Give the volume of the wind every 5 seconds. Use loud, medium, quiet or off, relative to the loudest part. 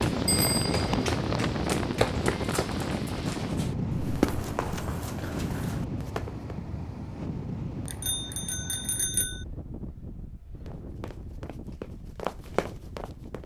loud, medium, quiet.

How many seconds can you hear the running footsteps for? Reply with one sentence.
You can hear the running footsteps for 9 seconds altogether.